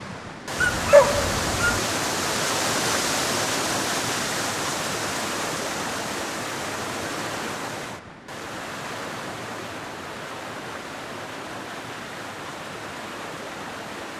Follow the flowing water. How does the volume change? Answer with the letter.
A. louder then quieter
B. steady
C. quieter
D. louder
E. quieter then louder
C.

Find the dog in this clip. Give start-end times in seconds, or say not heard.
0.6-1.8.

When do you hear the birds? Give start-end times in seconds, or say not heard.
not heard.